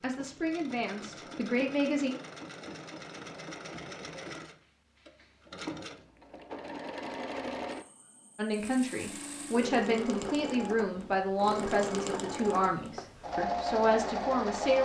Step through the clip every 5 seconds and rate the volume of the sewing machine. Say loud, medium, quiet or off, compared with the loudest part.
medium, medium, loud.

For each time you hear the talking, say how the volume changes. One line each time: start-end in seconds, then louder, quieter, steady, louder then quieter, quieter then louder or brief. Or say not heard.
0.0-2.1 brief
8.3-14.7 steady.